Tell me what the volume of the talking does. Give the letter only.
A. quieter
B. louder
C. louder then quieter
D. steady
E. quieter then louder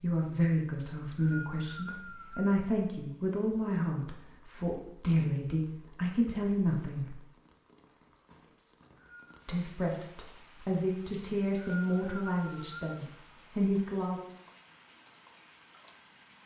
D.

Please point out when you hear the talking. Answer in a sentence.
You can hear the talking from 0.0 to 7.2 s and from 9.4 to 14.2 s.